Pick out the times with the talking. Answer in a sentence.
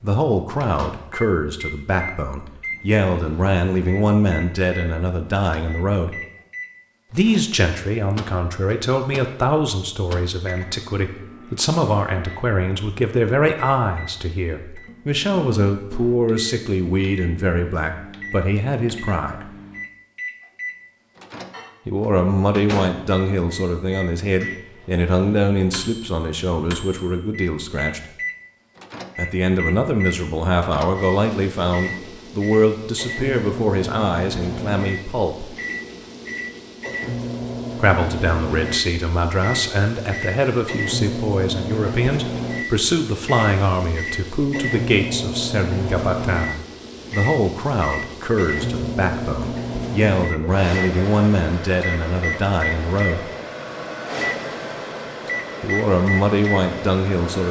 The talking can be heard from 0.0 to 6.2 s, from 7.1 to 19.4 s, from 21.9 to 28.0 s, from 29.1 to 35.5 s, from 37.8 to 53.2 s and from 55.6 to 57.4 s.